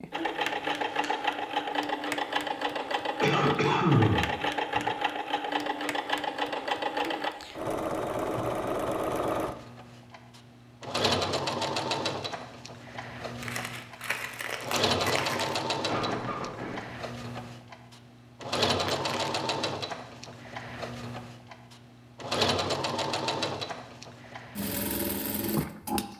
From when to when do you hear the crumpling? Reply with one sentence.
You can hear the crumpling from 0.7 to 1.4 s, from 13.4 to 15.7 s and from 18.8 to 19.3 s.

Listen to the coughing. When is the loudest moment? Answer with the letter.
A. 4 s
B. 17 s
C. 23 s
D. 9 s
A.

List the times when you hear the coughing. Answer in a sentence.
You can hear the coughing from 3.2 to 4.8 s and from 15.8 to 16.8 s.